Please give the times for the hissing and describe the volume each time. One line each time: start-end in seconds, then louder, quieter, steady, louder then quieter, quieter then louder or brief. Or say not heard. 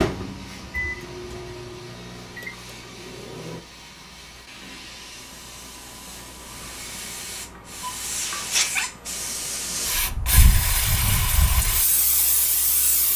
0.0-13.1 louder.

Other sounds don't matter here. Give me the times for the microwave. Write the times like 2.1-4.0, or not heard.
0.0-3.6.